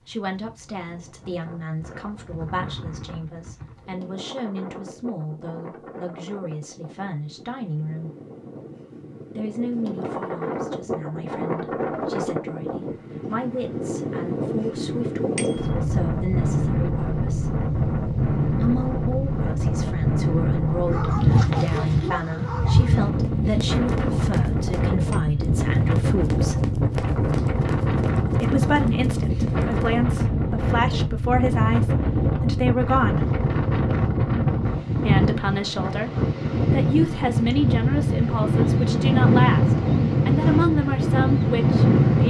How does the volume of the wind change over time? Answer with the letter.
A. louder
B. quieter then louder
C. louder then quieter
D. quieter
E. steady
A.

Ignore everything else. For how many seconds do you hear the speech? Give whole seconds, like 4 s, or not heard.
36 s.